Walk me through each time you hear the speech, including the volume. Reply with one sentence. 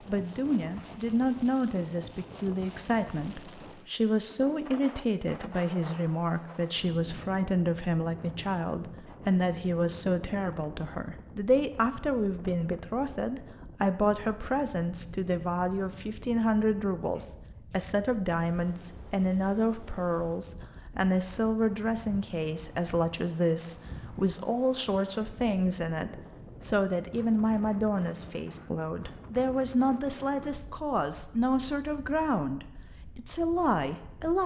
The speech can be heard from 0.1 to 34.4 s, at a steady volume.